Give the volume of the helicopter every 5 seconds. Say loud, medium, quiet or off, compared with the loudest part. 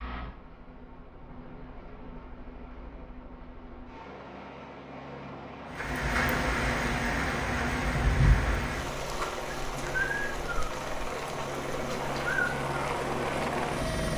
quiet, medium, loud.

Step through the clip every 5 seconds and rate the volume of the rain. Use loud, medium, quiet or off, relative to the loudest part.
off, loud, medium.